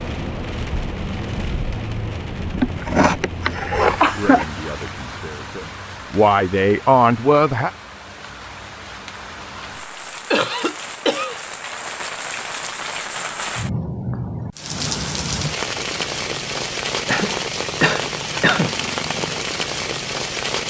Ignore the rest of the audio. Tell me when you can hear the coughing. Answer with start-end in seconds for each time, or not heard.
2.5-4.5, 10.3-11.4, 17.1-18.8.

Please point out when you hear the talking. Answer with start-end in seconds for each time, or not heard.
4.0-7.7.